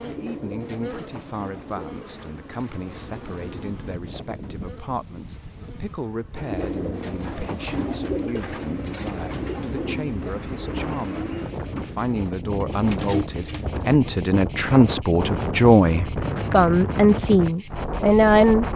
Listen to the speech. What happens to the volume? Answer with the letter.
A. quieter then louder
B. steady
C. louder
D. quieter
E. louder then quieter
C.